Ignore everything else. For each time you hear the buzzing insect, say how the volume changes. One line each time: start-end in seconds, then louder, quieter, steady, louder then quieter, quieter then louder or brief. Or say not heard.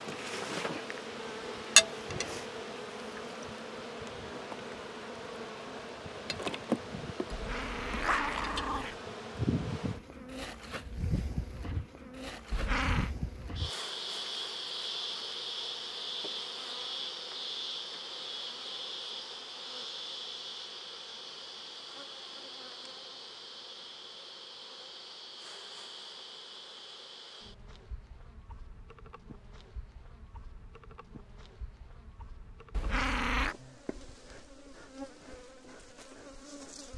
0.0-36.9 quieter.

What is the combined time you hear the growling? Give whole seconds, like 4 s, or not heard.
3 s.